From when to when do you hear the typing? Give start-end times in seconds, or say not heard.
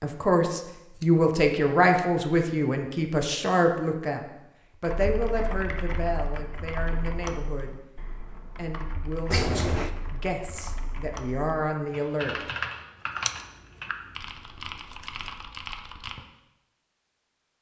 4.8-16.2.